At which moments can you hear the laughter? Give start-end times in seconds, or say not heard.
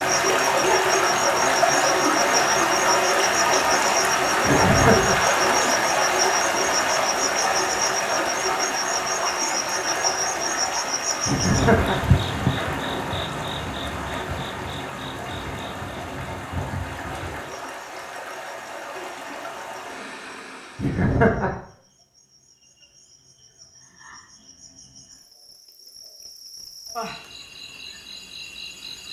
4.5-5.2, 11.2-12.0, 20.8-21.6.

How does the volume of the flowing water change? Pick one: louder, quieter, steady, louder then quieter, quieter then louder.
quieter.